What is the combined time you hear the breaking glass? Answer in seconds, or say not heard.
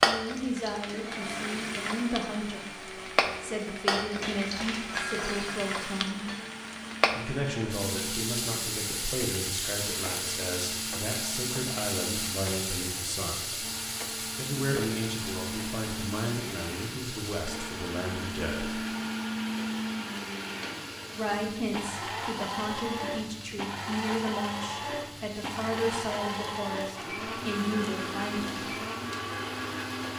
2 s.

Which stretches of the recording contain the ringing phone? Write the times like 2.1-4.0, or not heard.
not heard.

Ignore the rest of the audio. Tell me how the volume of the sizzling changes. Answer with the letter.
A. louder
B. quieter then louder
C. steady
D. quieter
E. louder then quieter
D.